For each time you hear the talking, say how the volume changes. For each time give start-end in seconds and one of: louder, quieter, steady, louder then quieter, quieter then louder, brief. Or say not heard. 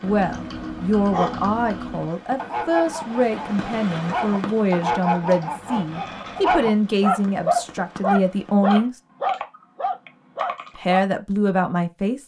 0.0-8.9 steady
10.8-12.2 brief.